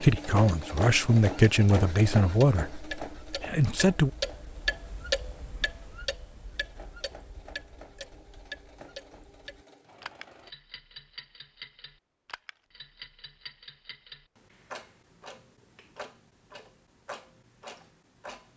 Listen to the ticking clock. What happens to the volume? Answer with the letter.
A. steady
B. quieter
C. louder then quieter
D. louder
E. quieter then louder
B.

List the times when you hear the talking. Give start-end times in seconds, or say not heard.
0.0-4.1.